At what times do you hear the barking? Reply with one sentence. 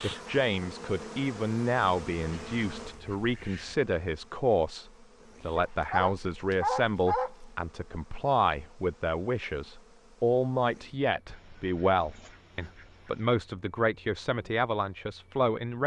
The barking can be heard from 5.5 to 7.5 s.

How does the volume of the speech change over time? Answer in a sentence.
The volume of the speech stays about the same.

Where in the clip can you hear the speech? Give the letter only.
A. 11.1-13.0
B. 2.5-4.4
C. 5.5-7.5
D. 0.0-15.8
D.